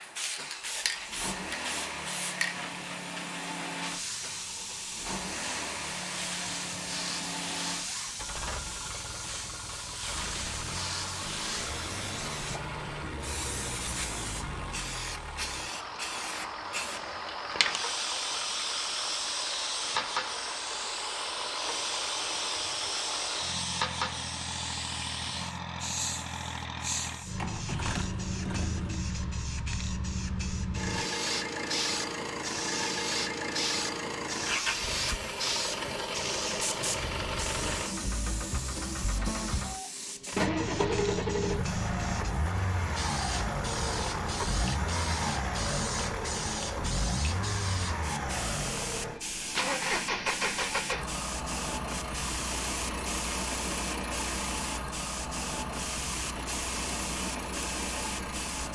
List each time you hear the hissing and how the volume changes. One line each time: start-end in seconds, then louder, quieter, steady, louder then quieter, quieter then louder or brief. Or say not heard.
0.0-58.6 steady.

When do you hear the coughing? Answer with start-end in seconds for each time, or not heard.
not heard.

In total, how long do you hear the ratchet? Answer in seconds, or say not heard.
not heard.